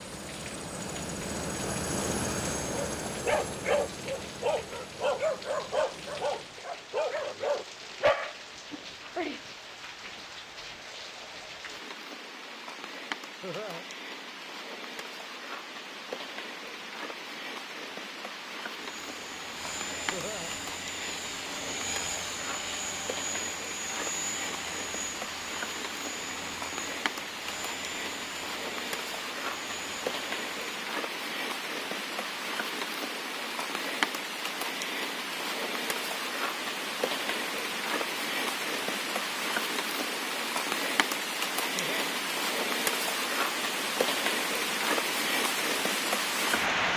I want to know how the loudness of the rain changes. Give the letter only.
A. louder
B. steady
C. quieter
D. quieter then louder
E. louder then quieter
A.